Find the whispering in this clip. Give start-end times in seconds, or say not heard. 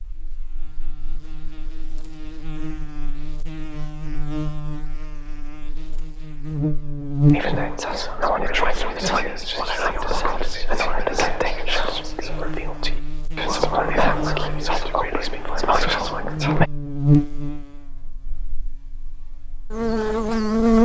7.3-16.6.